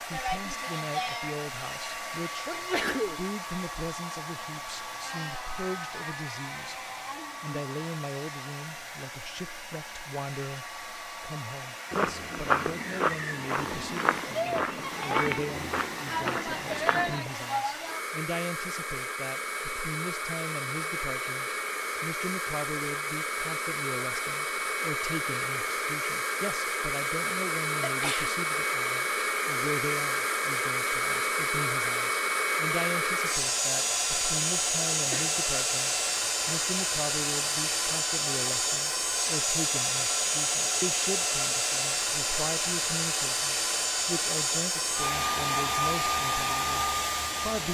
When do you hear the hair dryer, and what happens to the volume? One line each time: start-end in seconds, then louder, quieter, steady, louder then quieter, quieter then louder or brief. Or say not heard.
0.0-47.6 louder.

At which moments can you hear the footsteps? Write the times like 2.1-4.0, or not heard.
11.9-17.4.